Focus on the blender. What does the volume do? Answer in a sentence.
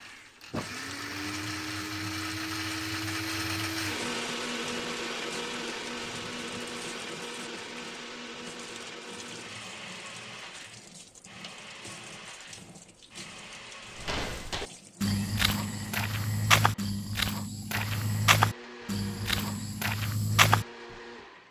The volume of the blender goes down.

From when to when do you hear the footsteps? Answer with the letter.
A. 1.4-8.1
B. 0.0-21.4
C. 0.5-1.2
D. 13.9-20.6
D.